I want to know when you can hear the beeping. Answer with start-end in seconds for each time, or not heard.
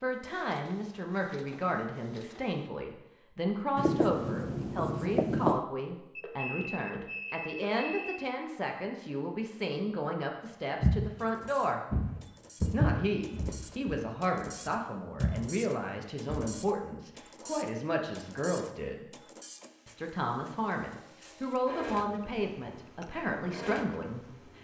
6.2-8.2.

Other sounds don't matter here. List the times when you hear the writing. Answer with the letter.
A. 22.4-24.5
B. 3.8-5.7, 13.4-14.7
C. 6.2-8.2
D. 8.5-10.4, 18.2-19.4
B.